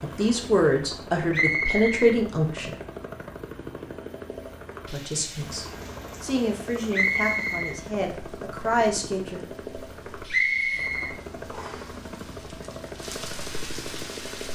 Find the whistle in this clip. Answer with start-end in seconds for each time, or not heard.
1.3-2.1, 6.9-7.8, 10.3-11.9.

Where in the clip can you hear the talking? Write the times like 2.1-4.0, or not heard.
0.0-2.8, 4.8-9.4.